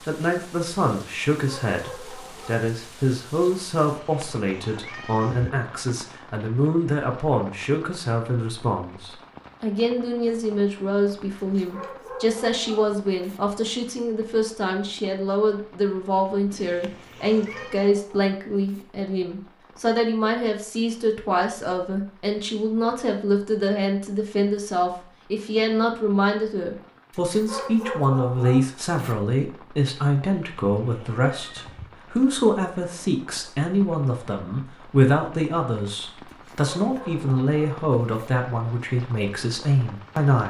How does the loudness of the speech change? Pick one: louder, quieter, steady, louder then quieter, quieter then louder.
steady.